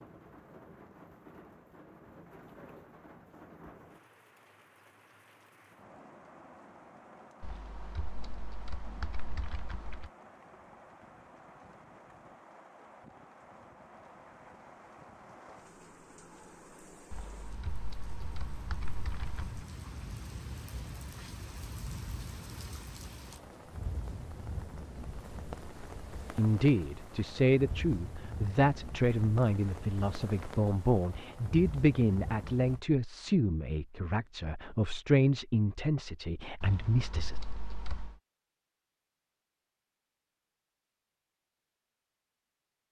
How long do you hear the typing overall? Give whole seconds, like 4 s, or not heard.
7 s.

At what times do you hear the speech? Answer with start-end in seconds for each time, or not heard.
26.4-37.4.